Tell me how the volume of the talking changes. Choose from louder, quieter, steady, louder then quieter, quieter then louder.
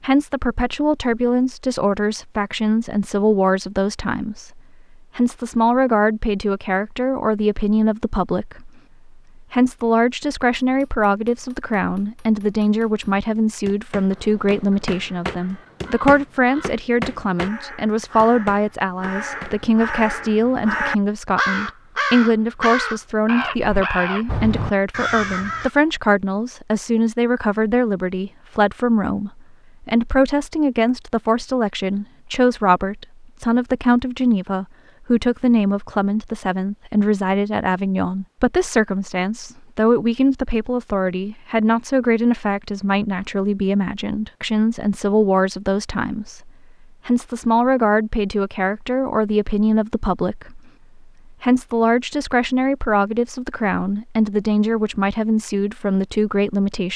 steady.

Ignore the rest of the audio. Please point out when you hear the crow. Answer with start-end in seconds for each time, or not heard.
14.1-25.7.